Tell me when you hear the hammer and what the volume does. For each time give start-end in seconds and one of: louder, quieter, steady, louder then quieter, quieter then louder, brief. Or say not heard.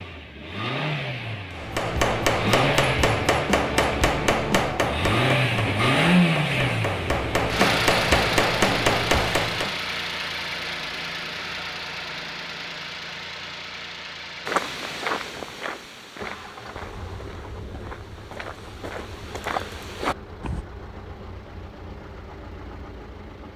1.5-9.8 quieter then louder.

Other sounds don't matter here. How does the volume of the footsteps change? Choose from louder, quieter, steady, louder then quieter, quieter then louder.
quieter then louder.